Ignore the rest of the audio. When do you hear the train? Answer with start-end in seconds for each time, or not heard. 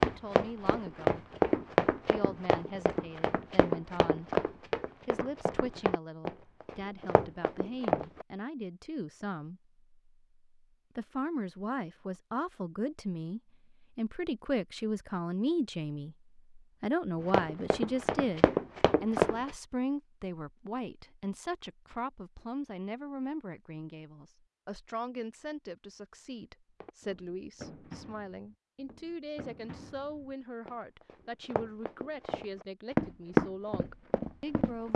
not heard.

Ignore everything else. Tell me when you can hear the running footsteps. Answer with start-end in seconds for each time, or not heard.
0.0-8.2, 17.2-19.6, 26.8-34.9.